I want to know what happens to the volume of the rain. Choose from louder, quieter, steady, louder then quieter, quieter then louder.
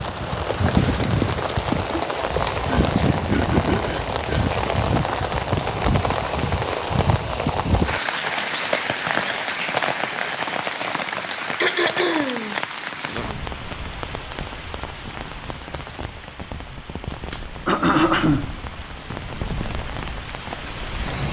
quieter.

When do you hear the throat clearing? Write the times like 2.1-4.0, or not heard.
2.6-4.5, 11.6-12.6, 17.6-18.5.